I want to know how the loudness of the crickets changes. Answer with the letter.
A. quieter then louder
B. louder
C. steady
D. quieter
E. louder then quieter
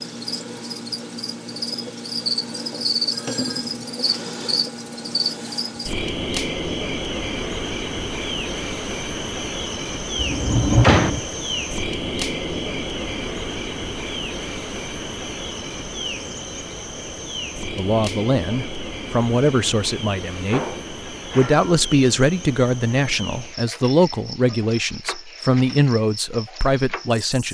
D.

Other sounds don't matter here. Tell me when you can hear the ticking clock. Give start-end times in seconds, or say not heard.
not heard.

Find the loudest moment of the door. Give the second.
11 s.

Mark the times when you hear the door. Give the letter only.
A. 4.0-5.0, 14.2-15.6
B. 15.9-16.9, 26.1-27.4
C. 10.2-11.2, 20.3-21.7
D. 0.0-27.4
C.